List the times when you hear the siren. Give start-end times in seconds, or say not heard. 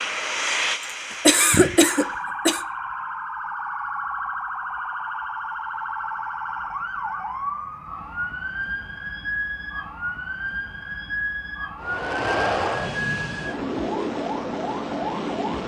1.8-15.6.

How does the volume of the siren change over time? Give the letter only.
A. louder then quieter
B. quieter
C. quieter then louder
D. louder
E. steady
E.